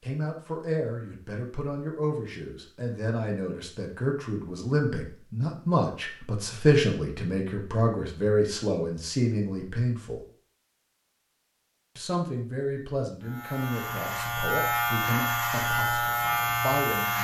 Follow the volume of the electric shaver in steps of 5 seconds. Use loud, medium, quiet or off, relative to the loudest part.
off, off, loud, loud.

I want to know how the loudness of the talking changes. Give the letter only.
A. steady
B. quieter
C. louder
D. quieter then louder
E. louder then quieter
E.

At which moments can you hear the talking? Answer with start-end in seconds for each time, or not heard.
0.0-10.2, 11.9-17.1.